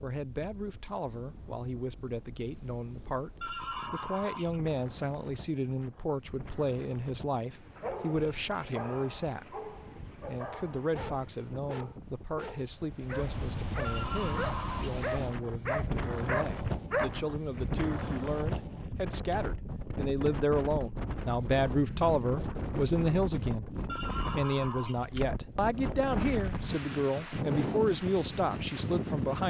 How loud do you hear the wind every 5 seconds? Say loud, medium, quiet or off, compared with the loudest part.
quiet, quiet, medium, loud, loud, loud.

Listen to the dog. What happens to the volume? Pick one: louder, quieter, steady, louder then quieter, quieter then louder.
louder.